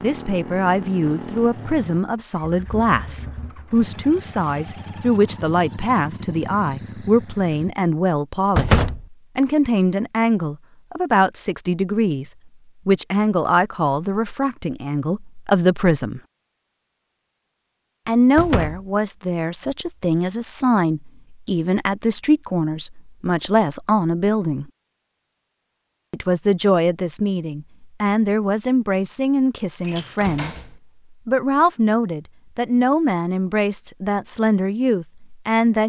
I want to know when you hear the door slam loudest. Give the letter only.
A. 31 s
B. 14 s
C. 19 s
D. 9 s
D.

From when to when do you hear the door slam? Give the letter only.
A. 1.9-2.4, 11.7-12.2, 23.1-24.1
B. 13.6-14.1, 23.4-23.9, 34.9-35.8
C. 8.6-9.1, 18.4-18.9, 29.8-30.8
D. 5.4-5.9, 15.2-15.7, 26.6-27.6
C.